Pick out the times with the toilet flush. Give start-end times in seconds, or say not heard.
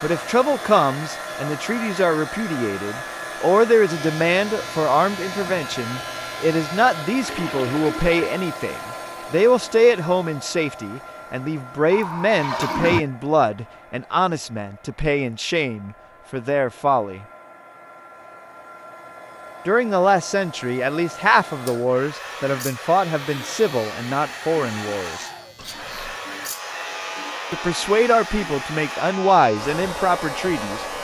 7.2-8.2, 11.9-13.1, 25.6-26.2.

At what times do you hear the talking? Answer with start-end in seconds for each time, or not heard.
0.0-17.2, 19.6-25.1, 27.5-30.8.